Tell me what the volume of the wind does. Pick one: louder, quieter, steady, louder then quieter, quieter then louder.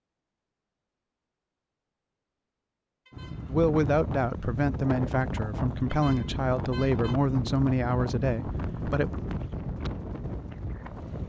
steady.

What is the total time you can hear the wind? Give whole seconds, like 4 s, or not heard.
8 s.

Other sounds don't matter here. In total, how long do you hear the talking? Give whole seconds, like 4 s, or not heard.
6 s.